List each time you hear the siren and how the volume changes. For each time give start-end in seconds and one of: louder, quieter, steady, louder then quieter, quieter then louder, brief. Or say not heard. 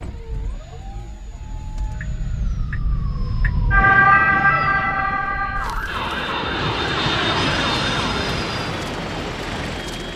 0.0-10.1 louder then quieter.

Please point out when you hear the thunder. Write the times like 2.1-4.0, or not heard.
6.4-8.4.